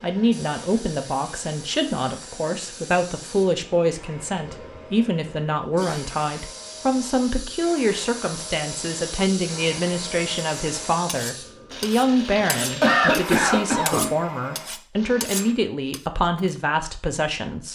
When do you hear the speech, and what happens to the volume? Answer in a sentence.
You can hear the speech from 0.0 to 17.7 s, at a steady volume.